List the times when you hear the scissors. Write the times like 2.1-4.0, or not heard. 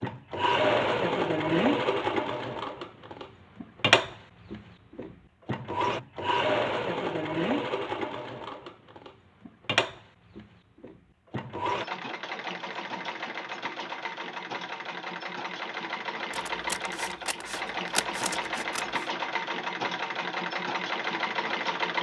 16.3-19.0.